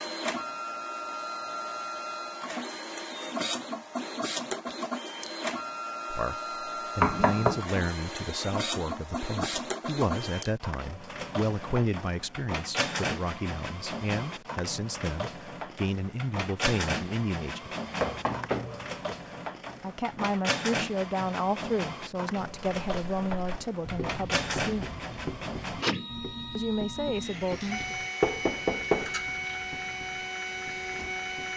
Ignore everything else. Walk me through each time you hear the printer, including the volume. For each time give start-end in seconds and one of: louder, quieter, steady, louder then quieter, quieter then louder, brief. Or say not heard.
0.0-31.5 steady.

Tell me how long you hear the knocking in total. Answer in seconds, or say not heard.
2 s.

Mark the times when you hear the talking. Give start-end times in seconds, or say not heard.
6.1-17.8, 19.8-24.9, 26.6-27.9.